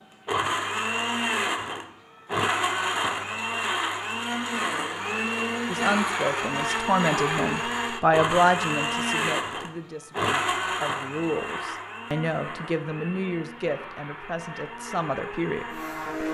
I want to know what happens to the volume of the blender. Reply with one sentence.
The volume of the blender goes down.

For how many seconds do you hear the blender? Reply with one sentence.
The blender can be heard for 16 seconds in total.